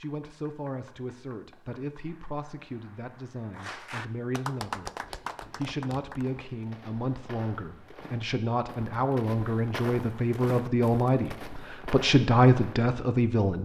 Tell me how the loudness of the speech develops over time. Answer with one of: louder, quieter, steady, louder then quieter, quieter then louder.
louder.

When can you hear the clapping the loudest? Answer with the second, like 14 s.
5 s.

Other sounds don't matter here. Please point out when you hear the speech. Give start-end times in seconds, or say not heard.
0.0-13.6.